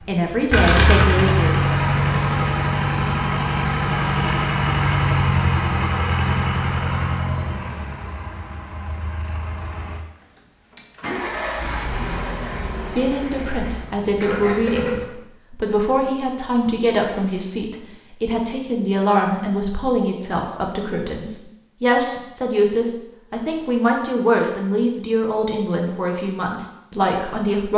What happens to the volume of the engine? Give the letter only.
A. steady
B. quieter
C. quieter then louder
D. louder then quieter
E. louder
B.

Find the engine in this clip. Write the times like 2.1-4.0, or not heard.
0.0-15.1.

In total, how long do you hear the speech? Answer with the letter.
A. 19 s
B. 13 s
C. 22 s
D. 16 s
D.